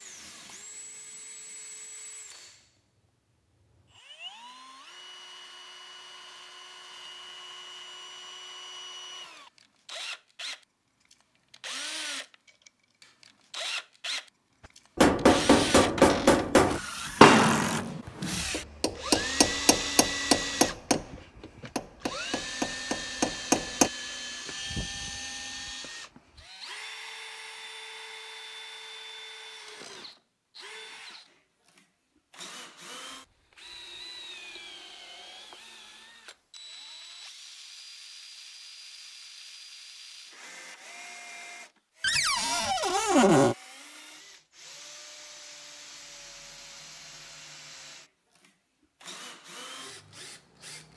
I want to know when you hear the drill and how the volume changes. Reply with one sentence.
The drill can be heard from 0.0 to 50.9 s, getting louder then quieter.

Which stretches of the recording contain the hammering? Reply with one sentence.
You can hear the hammering from 14.9 to 23.9 s.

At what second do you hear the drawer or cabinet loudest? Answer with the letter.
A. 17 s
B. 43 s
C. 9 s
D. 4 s
B.